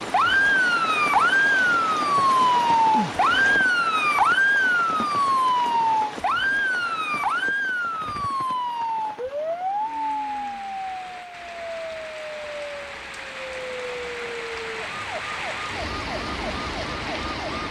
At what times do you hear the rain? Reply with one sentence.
You can hear the rain from 0.0 to 17.6 s.